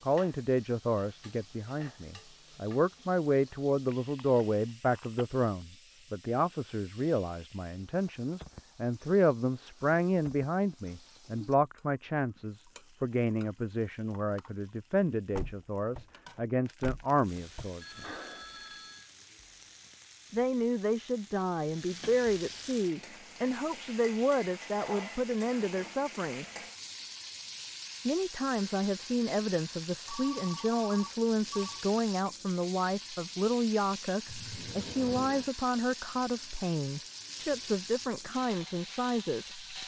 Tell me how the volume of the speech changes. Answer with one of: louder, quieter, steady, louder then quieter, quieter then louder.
steady.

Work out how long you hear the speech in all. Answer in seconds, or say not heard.
36 s.